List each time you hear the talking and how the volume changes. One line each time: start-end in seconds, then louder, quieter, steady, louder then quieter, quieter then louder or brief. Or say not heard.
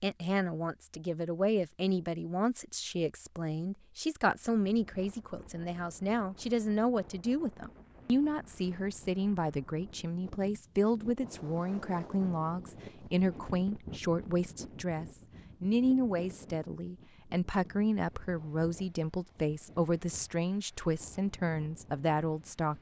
0.0-22.7 steady.